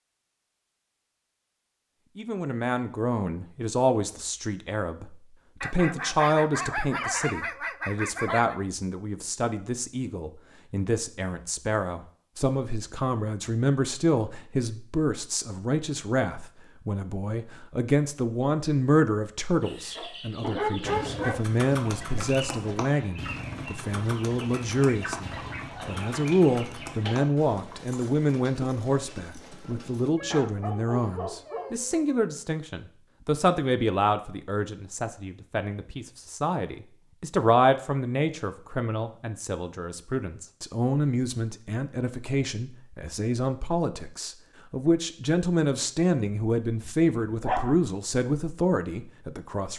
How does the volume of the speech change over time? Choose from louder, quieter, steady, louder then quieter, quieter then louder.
steady.